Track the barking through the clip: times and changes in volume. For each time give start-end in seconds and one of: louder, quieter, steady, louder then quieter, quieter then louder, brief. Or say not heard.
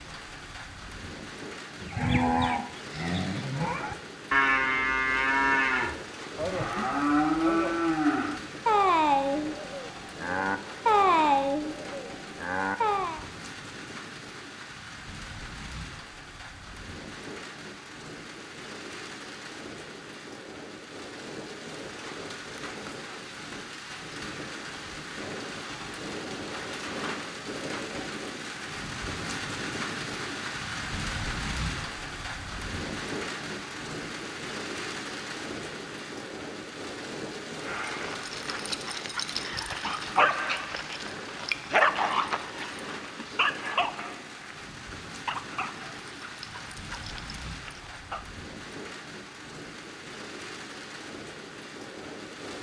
37.6-48.2 louder then quieter.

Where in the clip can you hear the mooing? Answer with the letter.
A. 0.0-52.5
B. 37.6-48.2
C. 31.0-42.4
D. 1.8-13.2
D.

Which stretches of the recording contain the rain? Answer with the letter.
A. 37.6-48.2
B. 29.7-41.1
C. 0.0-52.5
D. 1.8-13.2
C.